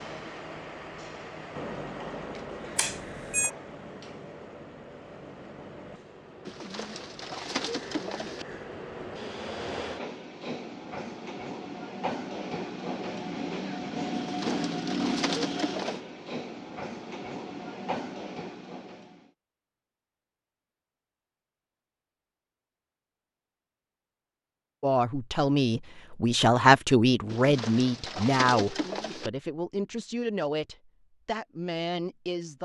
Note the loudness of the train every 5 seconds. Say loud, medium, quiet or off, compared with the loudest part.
medium, medium, loud, loud, off, off, off.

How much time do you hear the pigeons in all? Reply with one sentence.
The pigeons can be heard for 6 seconds in total.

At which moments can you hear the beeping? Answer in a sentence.
The beeping can be heard from 2.8 to 3.5 s.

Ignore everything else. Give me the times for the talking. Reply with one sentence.
The talking can be heard from 24.8 to 32.5 s.